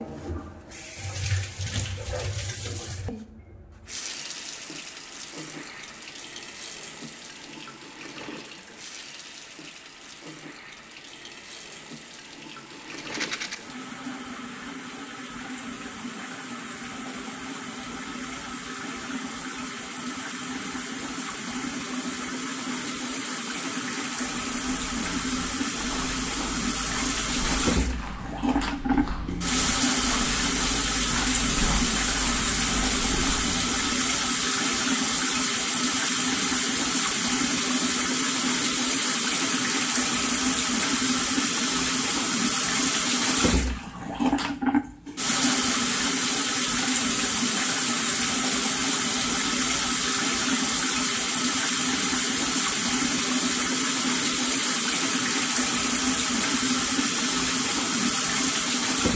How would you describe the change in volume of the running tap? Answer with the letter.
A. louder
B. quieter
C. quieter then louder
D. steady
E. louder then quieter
A.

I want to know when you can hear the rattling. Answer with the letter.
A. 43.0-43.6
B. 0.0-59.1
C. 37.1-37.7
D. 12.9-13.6
D.